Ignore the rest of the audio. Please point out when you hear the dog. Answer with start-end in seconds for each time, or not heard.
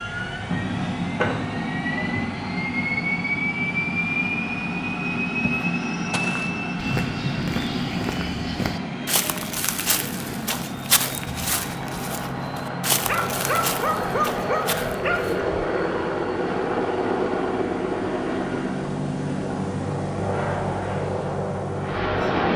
13.1-15.4.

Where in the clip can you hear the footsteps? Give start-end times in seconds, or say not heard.
5.4-15.3.